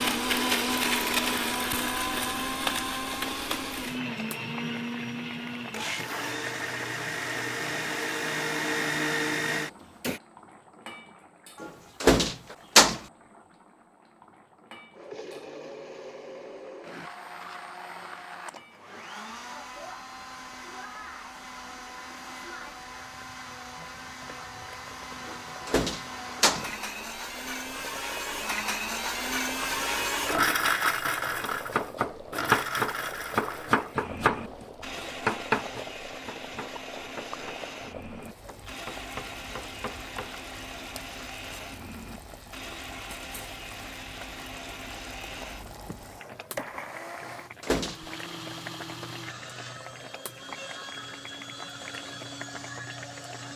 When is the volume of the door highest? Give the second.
13 s.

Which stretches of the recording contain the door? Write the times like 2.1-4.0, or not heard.
11.6-13.0, 25.2-26.6, 47.2-48.1.